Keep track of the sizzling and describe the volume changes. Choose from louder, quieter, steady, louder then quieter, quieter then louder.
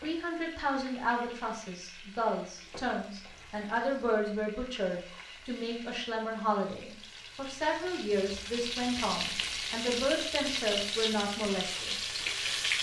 louder.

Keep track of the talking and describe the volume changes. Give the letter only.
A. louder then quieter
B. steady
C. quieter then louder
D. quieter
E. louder
B.